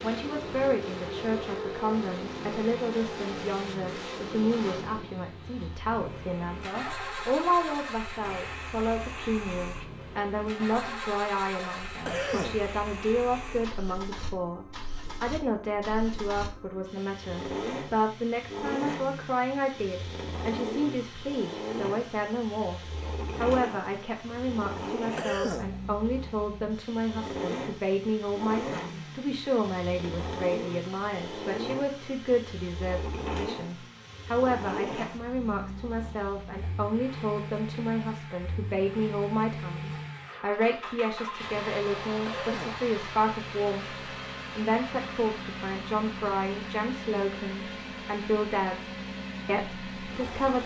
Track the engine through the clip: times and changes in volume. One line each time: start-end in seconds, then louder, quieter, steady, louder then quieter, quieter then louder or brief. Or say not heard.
0.0-50.6 steady.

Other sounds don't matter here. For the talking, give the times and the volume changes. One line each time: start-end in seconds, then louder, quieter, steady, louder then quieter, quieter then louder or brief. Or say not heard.
0.0-50.6 steady.